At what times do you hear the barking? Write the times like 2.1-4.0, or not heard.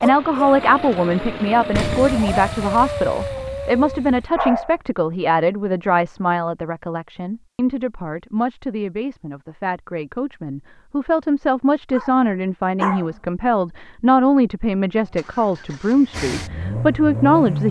0.0-4.8, 11.9-13.2.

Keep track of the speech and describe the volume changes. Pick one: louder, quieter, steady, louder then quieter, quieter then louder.
quieter then louder.